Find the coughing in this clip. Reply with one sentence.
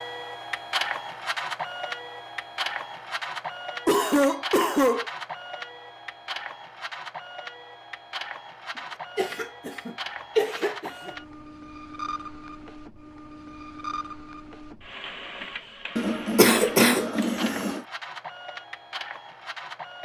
You can hear the coughing from 3.9 to 5.0 s, from 9.2 to 11.1 s and from 15.9 to 17.8 s.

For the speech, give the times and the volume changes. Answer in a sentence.
The speech can't be heard in this clip.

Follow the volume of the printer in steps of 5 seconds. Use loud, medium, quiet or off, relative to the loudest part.
loud, medium, medium, medium.